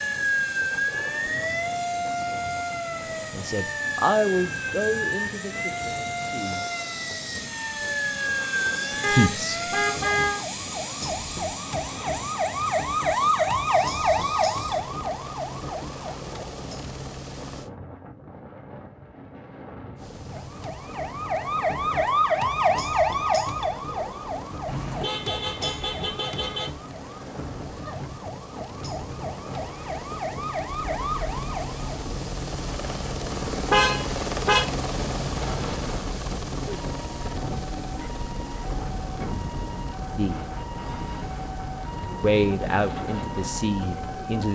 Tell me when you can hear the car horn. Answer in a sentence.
The car horn can be heard from 9.0 to 10.4 s, from 24.6 to 26.7 s and from 33.7 to 34.6 s.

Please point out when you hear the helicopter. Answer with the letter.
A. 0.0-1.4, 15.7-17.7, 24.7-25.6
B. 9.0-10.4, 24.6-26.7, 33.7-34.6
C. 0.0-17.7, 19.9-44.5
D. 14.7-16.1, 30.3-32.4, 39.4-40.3
C.